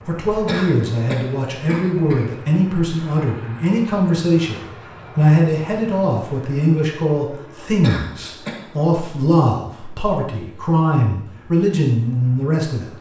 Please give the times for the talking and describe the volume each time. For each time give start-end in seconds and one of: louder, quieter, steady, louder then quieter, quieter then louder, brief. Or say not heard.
0.0-12.9 steady.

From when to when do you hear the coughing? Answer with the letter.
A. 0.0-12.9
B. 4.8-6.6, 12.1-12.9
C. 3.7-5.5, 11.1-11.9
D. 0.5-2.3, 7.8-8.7
D.